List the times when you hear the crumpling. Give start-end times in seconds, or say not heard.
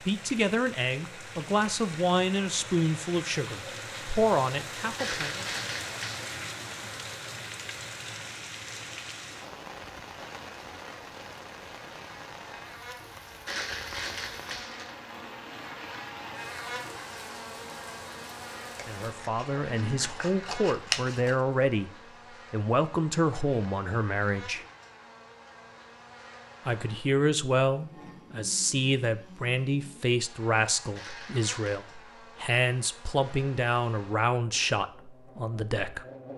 5.0-6.2, 13.4-14.9, 30.9-31.9.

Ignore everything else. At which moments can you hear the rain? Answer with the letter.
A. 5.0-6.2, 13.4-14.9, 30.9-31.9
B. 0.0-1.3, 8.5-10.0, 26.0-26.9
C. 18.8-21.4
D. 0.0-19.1
D.